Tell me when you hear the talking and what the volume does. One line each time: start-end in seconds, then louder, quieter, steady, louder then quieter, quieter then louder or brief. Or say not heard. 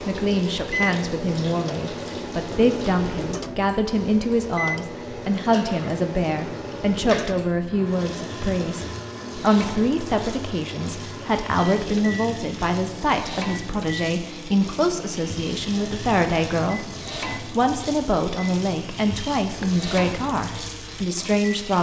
0.1-21.7 steady.